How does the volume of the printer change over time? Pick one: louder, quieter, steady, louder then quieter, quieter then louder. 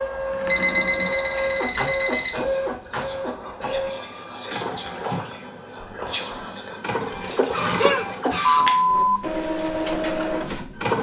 quieter then louder.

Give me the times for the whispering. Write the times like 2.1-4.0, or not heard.
2.1-8.2.